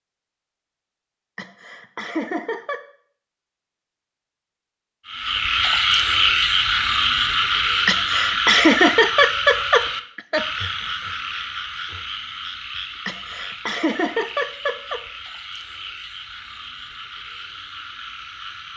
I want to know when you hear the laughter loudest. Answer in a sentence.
The volume of the laughter peaks at 9 seconds.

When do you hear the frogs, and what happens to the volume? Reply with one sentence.
You can hear the frogs from 5.0 to 18.7 s, getting quieter.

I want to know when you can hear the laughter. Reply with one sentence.
The laughter can be heard from 1.4 to 2.8 s, from 7.8 to 10.4 s and from 13.1 to 15.0 s.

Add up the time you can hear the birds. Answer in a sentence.
You can't hear the birds here.